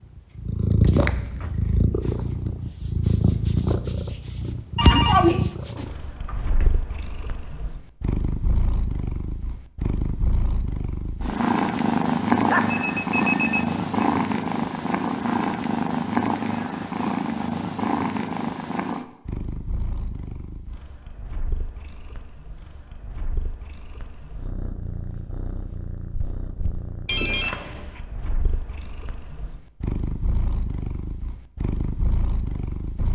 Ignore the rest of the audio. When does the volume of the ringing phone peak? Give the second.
5 s.